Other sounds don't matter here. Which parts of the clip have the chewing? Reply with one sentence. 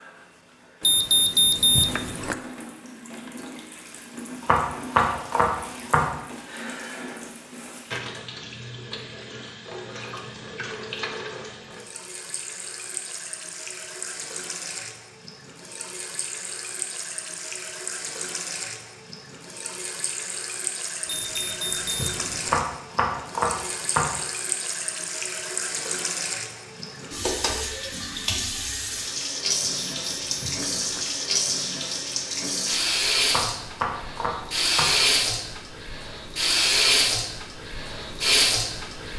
The chewing can't be heard in this clip.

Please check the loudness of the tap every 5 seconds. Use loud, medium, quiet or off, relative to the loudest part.
quiet, quiet, quiet, quiet, medium, medium, loud, loud.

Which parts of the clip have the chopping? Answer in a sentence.
The chopping can be heard from 4.4 to 6.2 s, from 22.4 to 24.2 s and from 33.2 to 35.0 s.